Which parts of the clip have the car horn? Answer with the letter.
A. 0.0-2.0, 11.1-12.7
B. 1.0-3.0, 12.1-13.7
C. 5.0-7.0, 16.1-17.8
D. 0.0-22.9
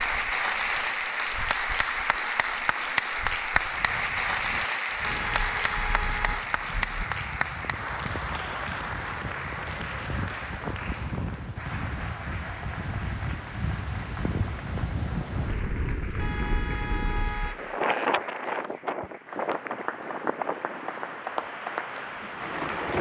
C.